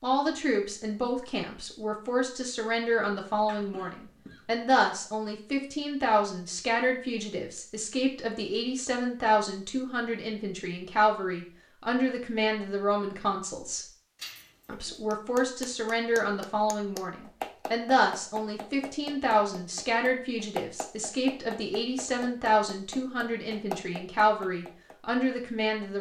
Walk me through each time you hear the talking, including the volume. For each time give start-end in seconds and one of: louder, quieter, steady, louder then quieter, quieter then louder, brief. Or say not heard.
0.0-13.8 steady
14.7-25.9 steady.